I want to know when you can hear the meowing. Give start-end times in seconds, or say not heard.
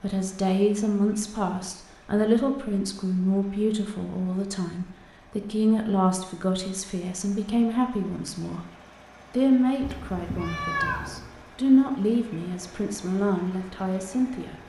9.8-11.3.